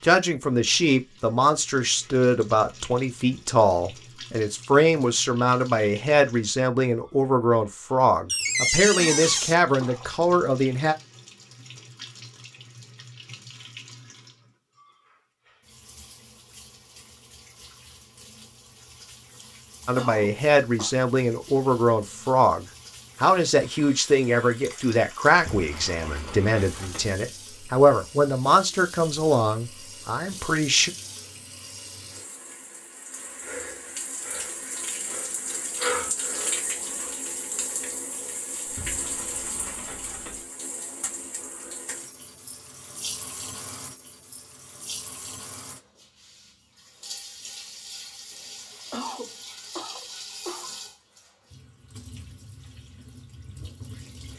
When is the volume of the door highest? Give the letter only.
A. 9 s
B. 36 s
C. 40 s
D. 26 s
A.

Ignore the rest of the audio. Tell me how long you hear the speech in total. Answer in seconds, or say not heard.
22 s.